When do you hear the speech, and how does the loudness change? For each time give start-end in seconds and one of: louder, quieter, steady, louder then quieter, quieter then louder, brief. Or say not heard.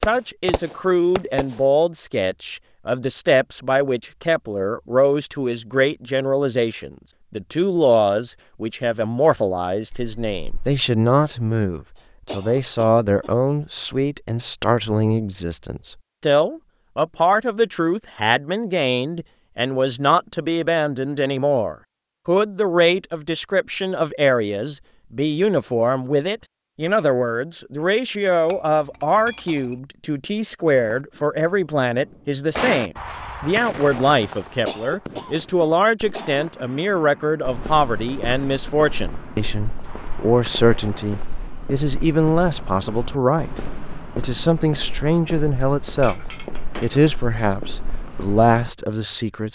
0.1-46.2 steady
46.8-49.4 brief.